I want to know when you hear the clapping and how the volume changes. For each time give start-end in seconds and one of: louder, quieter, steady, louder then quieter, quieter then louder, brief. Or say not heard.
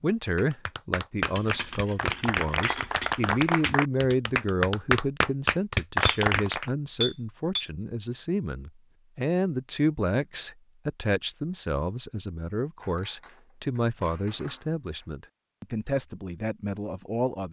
0.3-6.7 louder.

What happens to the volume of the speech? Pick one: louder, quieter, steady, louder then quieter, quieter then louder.
steady.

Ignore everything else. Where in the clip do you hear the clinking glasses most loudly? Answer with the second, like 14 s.
7 s.